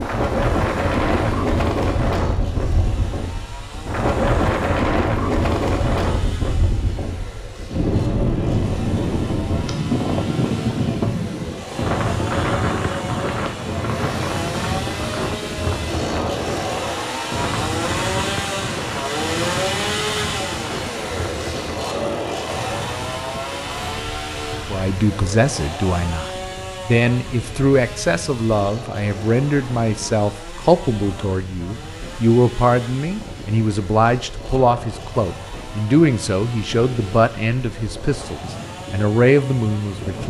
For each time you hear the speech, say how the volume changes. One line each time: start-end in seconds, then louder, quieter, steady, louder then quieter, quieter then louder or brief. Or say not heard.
24.7-40.2 steady.